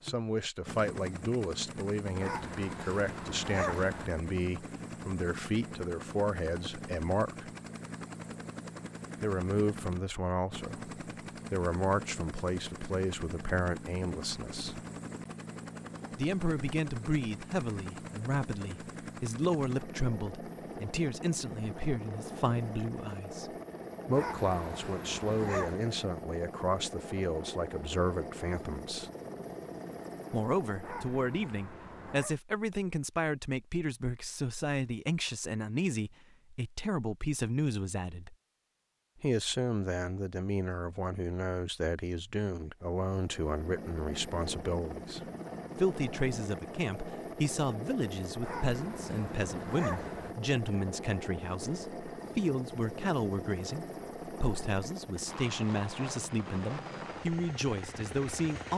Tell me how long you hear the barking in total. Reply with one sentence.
You can hear the barking for 7 seconds altogether.